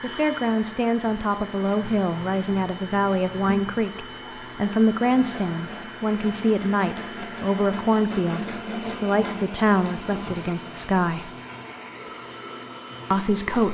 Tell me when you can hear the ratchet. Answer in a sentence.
The ratchet can't be heard in this clip.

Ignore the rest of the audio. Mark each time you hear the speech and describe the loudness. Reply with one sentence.
You can hear the speech from 0.0 to 11.3 s, at a steady volume; and briefly from 13.1 to 13.7 s.